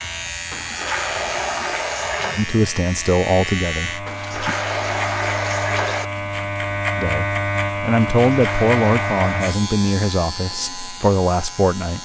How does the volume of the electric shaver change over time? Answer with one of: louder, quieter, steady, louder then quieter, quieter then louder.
louder then quieter.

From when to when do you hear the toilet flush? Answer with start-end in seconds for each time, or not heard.
0.5-2.5, 4.0-6.0, 8.2-9.6.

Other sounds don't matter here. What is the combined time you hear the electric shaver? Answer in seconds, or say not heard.
12 s.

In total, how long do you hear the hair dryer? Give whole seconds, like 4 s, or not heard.
not heard.